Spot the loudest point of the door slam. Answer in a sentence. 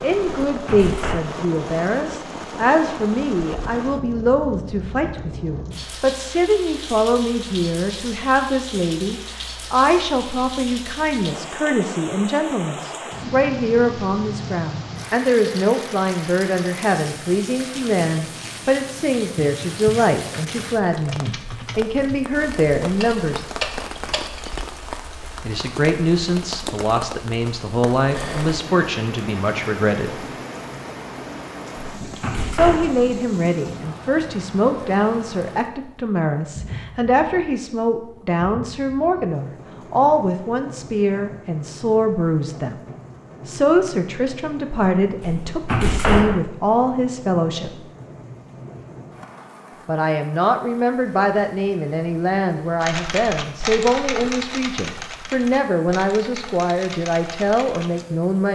The loudest moment of the door slam is at 46 seconds.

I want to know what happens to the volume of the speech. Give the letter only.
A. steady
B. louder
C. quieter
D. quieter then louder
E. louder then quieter
A.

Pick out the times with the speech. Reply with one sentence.
The speech can be heard from 0.0 to 23.4 s, from 25.4 to 30.2 s, from 32.5 to 42.8 s, from 43.5 to 47.8 s and from 49.9 to 58.5 s.